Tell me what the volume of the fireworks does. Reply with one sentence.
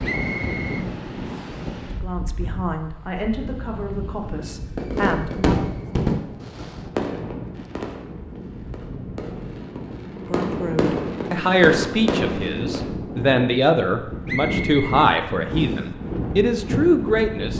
The loudness of the fireworks goes down, then up.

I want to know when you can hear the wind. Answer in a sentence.
The wind can be heard from 0.0 to 17.5 s.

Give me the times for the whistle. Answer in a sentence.
You can hear the whistle from 0.0 to 1.6 s and from 14.2 to 15.8 s.